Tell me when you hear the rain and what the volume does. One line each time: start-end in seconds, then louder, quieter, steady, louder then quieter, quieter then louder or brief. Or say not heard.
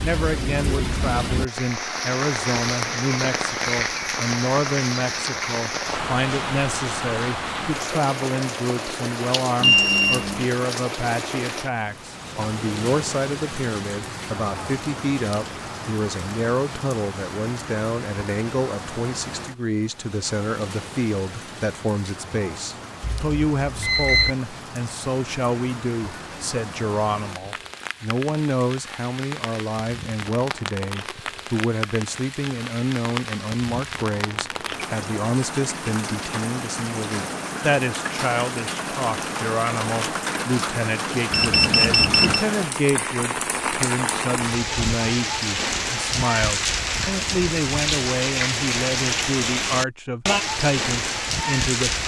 0.0-52.0 quieter then louder.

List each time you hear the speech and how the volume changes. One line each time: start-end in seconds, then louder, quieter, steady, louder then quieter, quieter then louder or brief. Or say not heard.
0.0-52.0 steady.